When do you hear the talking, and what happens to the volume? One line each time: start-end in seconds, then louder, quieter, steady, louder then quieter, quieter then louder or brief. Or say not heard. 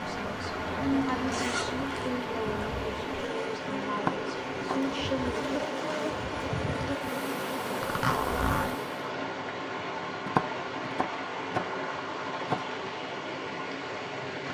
0.0-5.4 steady.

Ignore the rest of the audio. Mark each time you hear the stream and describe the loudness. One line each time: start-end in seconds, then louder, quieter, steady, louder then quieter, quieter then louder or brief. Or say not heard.
0.0-14.4 steady.